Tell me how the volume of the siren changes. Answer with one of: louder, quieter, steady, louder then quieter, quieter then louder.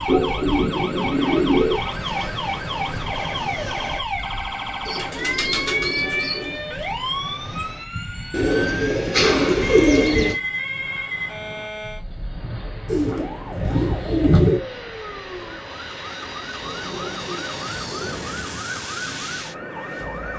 quieter.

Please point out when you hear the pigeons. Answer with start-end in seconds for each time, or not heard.
0.1-1.8, 4.8-6.5, 8.3-10.3, 12.8-14.6, 16.6-18.2.